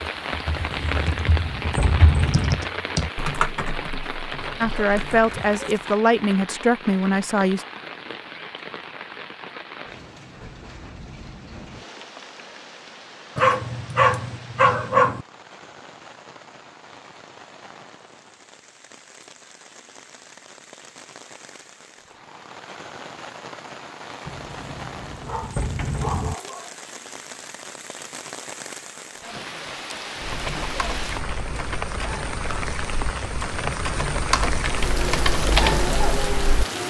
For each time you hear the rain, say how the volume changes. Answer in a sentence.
The rain can be heard from 0.0 to 36.8 s, getting quieter then louder.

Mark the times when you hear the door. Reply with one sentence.
The door can be heard from 0.5 to 2.6 s and from 24.2 to 26.4 s.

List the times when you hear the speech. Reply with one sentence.
The speech can be heard from 4.6 to 7.7 s.